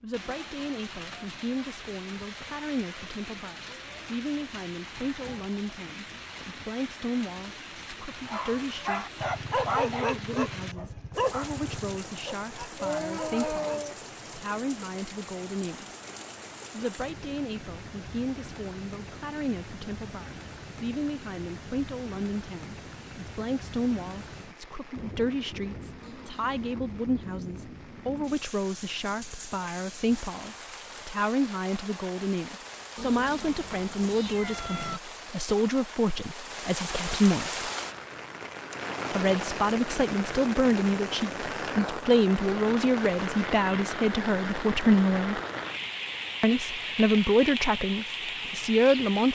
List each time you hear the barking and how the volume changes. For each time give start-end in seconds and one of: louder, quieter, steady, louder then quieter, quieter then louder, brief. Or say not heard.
8.2-13.9 quieter.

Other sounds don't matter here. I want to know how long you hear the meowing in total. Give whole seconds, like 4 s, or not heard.
4 s.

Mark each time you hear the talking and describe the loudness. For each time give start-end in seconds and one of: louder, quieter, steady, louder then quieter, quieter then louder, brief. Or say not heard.
0.0-15.8 steady
16.7-37.7 louder
39.1-45.4 steady
46.4-49.3 brief.